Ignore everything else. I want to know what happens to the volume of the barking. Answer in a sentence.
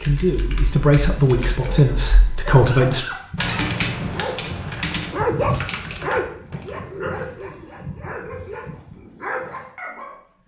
The volume of the barking goes up, then down.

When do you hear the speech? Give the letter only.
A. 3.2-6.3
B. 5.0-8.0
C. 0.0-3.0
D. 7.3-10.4
C.